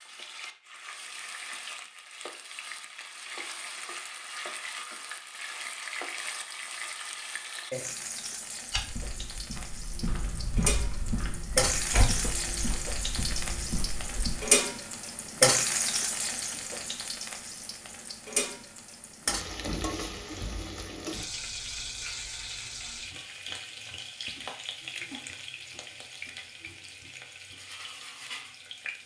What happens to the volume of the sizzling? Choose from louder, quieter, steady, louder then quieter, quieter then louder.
louder then quieter.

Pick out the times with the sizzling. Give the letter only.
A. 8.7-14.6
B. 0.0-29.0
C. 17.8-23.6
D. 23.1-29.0
B.